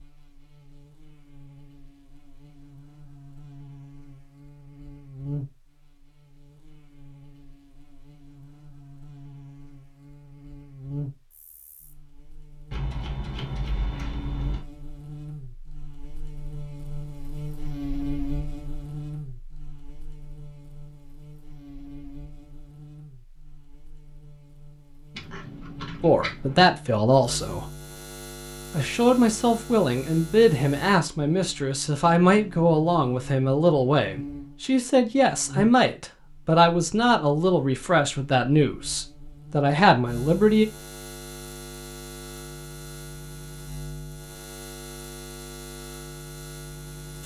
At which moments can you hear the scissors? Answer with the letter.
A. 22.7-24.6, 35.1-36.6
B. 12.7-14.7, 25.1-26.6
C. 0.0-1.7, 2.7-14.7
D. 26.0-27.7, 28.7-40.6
B.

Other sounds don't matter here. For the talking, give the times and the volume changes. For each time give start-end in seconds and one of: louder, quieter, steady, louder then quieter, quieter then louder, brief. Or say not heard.
26.0-27.7 brief
28.7-40.6 steady.